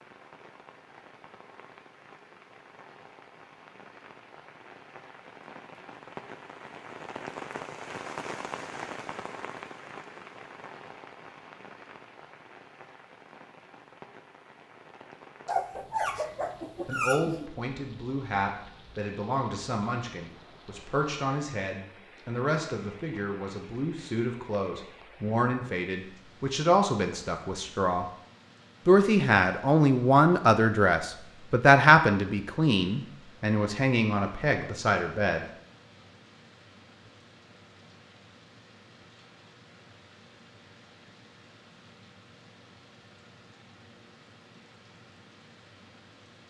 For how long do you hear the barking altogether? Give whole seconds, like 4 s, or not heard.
2 s.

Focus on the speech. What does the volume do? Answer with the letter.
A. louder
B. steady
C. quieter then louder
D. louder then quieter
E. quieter
D.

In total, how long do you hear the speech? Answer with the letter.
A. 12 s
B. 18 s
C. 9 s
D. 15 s
B.